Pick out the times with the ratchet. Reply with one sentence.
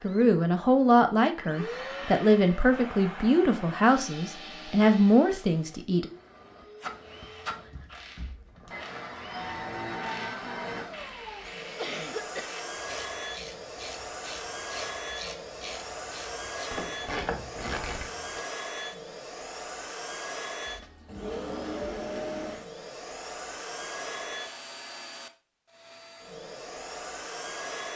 The ratchet can be heard from 7.0 to 18.4 s.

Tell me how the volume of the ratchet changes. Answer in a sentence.
The volume of the ratchet goes up.